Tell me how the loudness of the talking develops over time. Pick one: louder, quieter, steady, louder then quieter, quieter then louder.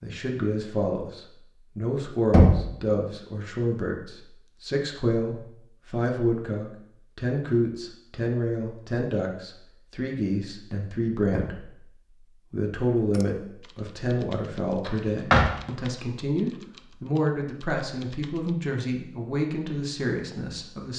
steady.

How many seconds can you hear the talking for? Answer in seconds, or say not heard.
20 s.